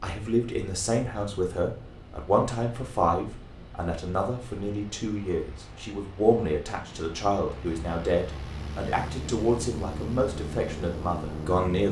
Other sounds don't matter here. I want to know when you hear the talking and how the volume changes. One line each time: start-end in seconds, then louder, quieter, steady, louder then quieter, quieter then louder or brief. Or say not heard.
0.0-11.8 steady.